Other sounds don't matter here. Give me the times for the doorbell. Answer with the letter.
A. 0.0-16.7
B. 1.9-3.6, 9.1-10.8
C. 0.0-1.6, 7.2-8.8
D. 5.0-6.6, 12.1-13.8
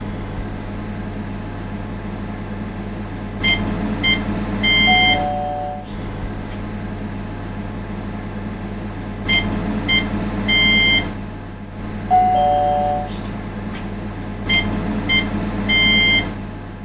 D.